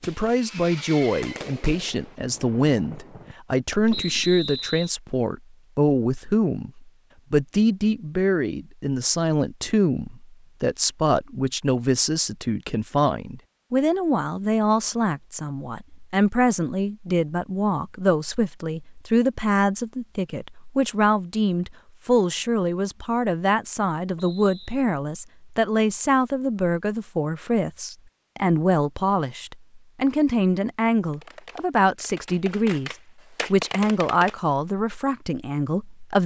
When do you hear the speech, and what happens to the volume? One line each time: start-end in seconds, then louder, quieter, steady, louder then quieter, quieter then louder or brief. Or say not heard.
0.0-36.2 steady.